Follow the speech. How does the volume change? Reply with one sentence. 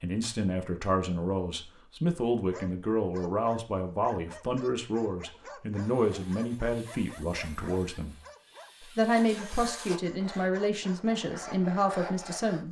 The loudness of the speech stays about the same.